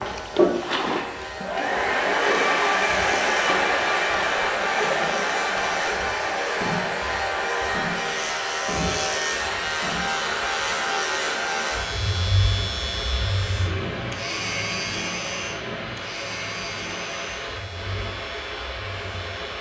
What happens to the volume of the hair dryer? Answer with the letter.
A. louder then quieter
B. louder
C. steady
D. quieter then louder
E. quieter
E.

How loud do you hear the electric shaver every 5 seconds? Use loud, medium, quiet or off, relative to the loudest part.
medium, loud, loud, medium.